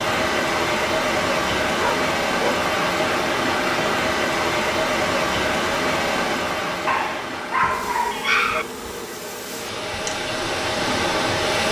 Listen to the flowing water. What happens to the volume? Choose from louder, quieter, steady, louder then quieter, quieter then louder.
quieter then louder.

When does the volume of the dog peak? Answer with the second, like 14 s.
8 s.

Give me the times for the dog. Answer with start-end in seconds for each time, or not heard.
1.8-2.6, 6.8-8.7.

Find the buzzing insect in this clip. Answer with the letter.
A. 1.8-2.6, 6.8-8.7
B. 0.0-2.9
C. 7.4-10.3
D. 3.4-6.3
C.